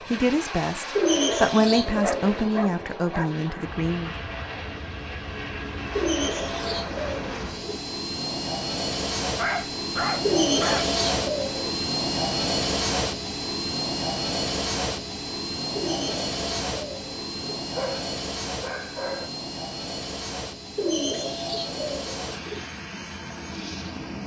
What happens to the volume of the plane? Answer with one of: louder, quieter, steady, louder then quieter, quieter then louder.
louder then quieter.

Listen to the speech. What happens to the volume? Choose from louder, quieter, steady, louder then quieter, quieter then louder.
louder then quieter.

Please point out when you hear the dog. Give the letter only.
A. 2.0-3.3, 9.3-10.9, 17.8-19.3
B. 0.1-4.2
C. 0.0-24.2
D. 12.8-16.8
A.